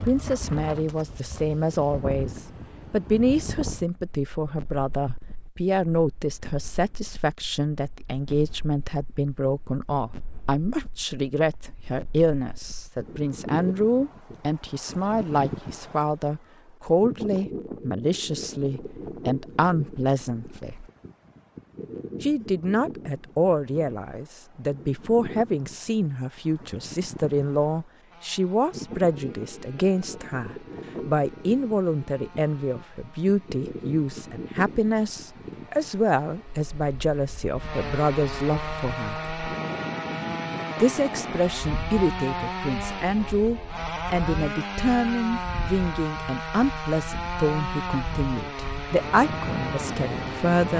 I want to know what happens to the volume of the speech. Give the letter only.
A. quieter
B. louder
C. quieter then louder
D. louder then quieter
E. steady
E.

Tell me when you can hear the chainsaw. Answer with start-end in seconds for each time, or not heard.
28.1-50.7.